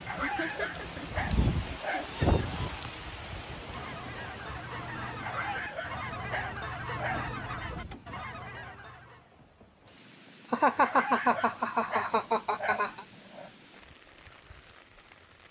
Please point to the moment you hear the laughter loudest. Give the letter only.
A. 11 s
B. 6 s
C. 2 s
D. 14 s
A.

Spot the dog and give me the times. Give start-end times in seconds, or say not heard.
0.1-2.1, 5.2-7.3, 10.8-13.5.